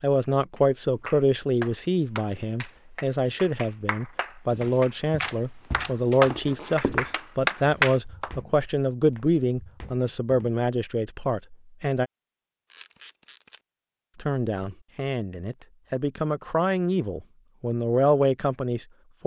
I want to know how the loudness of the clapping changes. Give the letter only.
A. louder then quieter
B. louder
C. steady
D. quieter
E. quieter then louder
E.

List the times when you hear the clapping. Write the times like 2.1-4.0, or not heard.
0.6-8.3.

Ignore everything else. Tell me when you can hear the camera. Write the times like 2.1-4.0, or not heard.
4.6-5.9, 12.7-13.6.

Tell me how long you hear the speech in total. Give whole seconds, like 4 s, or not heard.
17 s.